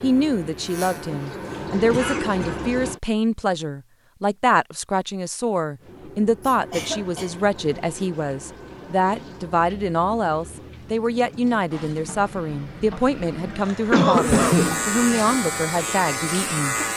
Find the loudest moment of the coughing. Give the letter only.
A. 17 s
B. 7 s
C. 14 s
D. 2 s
C.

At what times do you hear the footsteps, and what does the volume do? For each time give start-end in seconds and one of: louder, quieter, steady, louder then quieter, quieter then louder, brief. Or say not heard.
not heard.